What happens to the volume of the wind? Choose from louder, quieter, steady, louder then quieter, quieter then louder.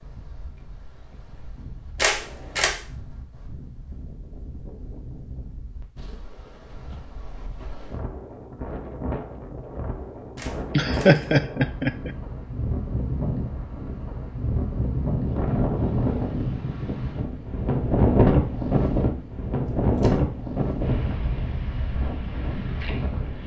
louder.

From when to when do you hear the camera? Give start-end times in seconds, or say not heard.
1.9-2.8, 10.3-11.4, 19.6-20.2.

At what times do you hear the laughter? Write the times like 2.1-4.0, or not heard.
10.7-12.2.